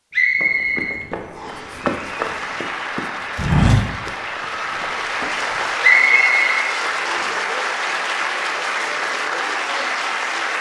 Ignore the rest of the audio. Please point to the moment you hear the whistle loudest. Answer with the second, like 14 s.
6 s.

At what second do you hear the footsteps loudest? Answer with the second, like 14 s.
4 s.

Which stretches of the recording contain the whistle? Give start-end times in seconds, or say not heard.
0.1-1.7, 5.8-7.3.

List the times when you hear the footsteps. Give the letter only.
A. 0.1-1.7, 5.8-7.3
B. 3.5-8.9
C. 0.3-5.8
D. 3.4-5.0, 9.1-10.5
C.